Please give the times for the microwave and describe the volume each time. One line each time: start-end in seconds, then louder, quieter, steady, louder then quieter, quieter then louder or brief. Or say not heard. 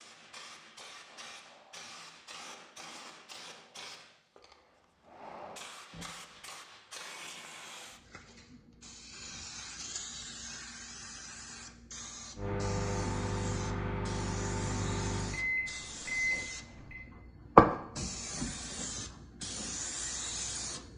12.3-17.0 steady.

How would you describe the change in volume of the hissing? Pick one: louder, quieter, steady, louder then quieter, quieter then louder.
louder.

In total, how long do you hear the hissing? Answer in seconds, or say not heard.
21 s.